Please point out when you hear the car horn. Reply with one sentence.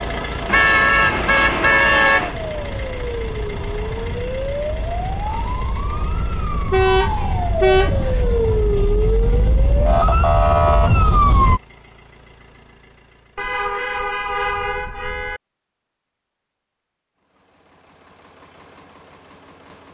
You can hear the car horn from 0.5 to 2.4 s, from 6.7 to 8.2 s and from 13.3 to 15.4 s.